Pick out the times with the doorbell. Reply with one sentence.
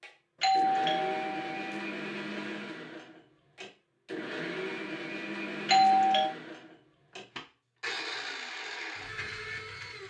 You can hear the doorbell from 0.4 to 1.9 s and from 5.7 to 6.3 s.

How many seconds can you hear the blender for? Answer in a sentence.
The blender can be heard for 10 seconds in total.